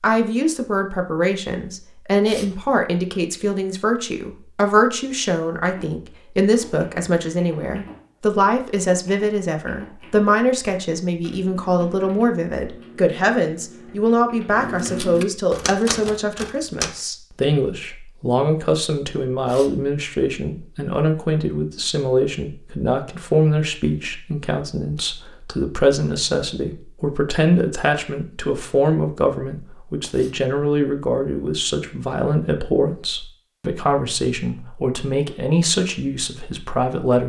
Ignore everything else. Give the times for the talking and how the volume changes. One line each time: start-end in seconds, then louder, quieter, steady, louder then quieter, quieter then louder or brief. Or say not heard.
0.0-37.2 steady.